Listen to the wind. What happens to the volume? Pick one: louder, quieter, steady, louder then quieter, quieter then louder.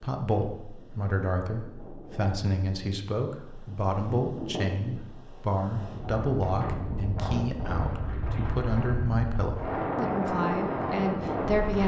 louder.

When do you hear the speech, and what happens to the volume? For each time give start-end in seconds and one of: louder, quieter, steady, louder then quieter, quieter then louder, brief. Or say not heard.
0.0-11.8 steady.